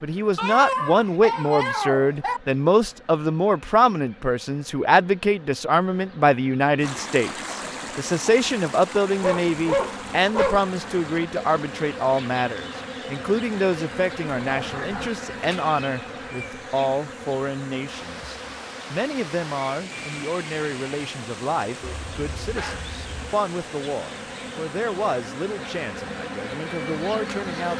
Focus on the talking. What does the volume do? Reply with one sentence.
The volume of the talking goes down.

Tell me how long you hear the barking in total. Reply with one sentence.
You can hear the barking for 6 seconds altogether.